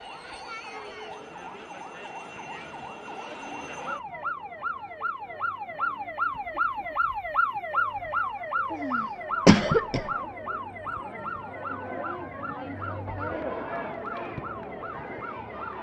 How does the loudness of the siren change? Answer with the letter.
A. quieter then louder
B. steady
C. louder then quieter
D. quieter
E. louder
C.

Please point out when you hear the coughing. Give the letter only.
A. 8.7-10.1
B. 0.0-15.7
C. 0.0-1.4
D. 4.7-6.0
A.